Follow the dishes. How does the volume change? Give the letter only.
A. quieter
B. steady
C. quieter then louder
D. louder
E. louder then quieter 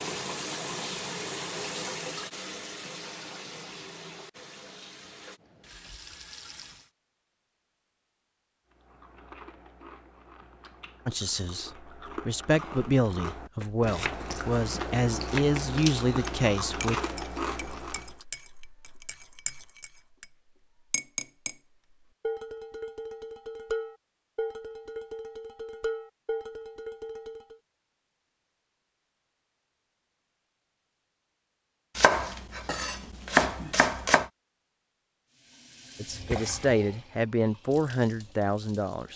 D.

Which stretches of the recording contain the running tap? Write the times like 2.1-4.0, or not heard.
0.0-6.9, 35.2-39.1.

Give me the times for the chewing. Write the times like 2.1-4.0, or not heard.
8.7-18.2.